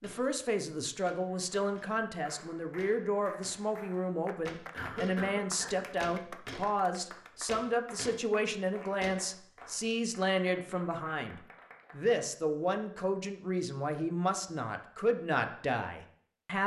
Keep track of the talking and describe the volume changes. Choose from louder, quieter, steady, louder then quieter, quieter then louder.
steady.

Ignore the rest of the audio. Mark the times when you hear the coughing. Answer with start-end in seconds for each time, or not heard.
4.7-5.8.